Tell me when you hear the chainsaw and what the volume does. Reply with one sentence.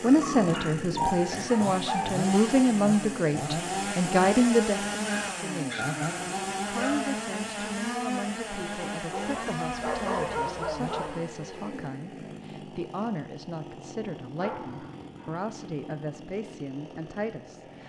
You can hear the chainsaw from 0.0 to 17.8 s, getting quieter.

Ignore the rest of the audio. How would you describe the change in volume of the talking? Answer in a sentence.
The volume of the talking goes down.